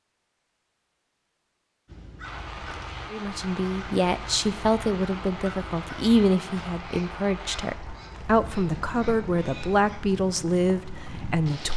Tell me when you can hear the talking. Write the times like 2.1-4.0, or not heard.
3.1-11.7.